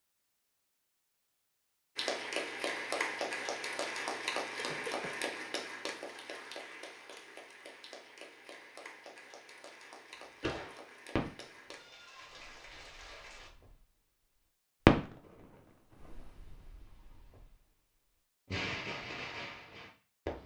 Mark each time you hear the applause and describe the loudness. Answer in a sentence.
The applause can be heard from 1.9 to 13.5 s, getting quieter.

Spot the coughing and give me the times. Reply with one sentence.
The coughing can be heard from 4.5 to 5.2 s.